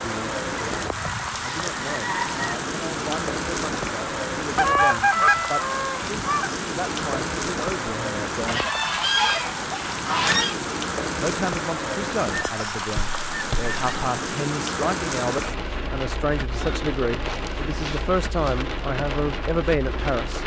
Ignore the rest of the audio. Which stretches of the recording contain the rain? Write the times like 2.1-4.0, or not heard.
0.0-20.4.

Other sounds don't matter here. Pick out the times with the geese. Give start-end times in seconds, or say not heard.
0.8-2.6, 4.5-6.5, 8.4-10.6, 12.3-13.8, 16.5-18.6.